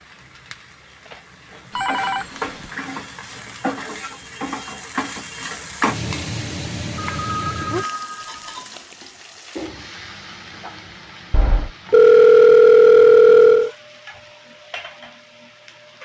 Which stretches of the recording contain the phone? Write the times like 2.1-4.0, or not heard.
1.7-2.7, 7.0-8.6, 11.3-13.7.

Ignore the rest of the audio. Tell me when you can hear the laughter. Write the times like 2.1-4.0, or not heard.
not heard.